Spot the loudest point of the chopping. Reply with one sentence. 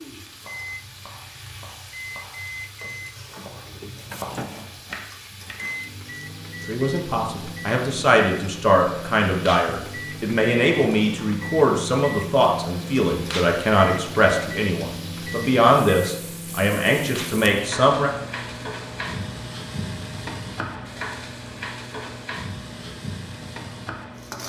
The volume of the chopping peaks at 4 seconds.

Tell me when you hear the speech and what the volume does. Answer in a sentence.
The speech can be heard from 6.7 to 18.1 s, at a steady volume.